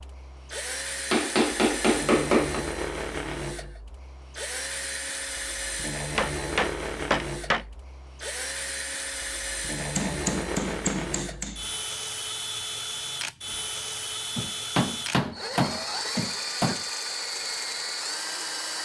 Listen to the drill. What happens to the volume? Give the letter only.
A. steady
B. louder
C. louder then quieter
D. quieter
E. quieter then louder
A.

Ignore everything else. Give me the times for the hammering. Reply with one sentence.
You can hear the hammering from 1.1 to 2.6 s, from 6.2 to 7.7 s, from 9.8 to 11.6 s and from 14.3 to 16.8 s.